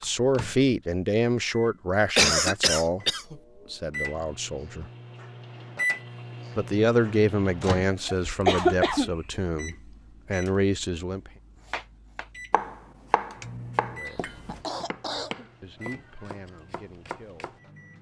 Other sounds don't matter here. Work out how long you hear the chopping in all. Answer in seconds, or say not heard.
6 s.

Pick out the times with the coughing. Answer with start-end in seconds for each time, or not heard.
2.1-3.4, 8.1-9.1, 14.1-15.4.